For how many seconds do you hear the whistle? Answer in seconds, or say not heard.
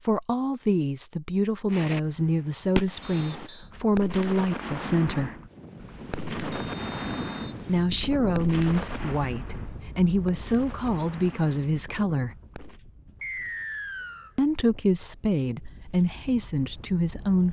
3 s.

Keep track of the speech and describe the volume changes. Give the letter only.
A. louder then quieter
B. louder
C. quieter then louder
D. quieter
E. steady
E.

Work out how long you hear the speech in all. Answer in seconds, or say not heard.
13 s.